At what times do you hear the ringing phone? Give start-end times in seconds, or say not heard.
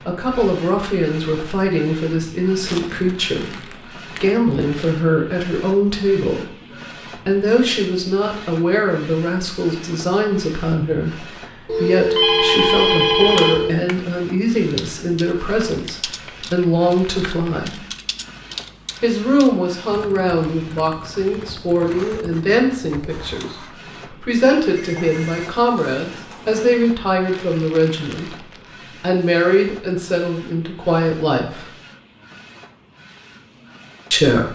11.7-13.7, 24.8-26.8.